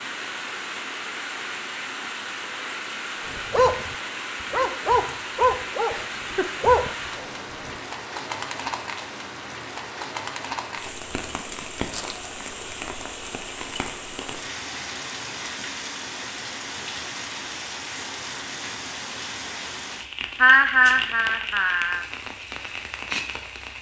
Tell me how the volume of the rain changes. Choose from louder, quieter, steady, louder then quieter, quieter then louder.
steady.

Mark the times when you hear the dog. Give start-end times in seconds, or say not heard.
3.2-7.8.